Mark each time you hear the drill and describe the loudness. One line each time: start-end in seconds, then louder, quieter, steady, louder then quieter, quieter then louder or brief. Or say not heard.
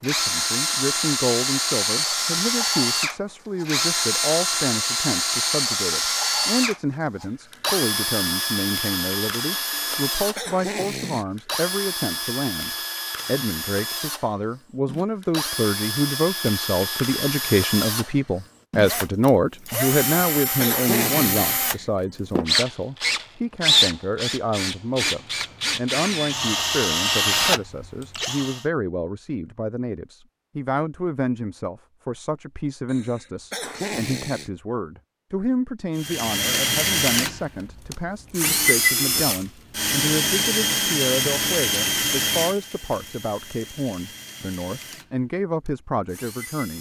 0.0-28.6 quieter then louder
36.0-46.7 quieter.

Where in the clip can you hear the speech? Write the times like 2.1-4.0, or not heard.
0.0-46.7.